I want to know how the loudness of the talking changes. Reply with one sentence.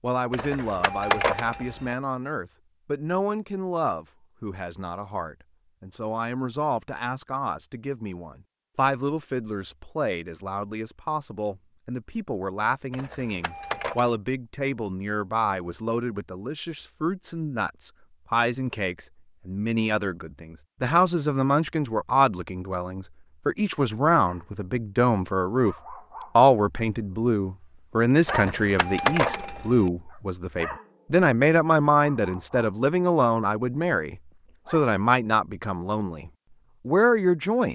The loudness of the talking goes up.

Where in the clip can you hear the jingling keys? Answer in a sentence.
You can hear the jingling keys from 0.3 to 1.9 s, from 12.9 to 14.2 s and from 28.2 to 29.9 s.